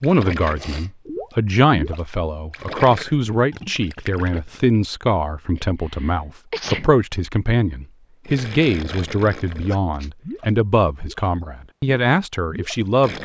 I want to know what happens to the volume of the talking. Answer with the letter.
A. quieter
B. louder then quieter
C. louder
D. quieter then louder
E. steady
E.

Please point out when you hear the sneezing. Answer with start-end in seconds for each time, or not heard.
0.6-1.4, 5.5-6.9, 9.4-10.2.